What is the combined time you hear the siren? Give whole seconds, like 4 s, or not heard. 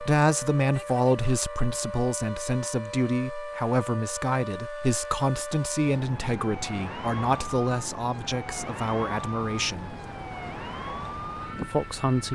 12 s.